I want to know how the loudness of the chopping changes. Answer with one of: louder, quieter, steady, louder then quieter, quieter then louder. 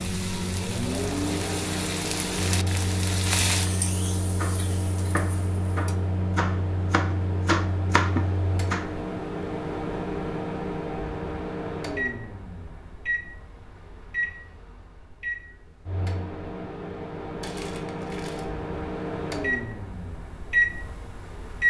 louder.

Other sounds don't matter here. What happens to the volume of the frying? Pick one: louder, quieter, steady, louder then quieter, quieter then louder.
louder then quieter.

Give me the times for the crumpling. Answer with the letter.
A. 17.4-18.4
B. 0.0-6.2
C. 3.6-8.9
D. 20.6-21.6
A.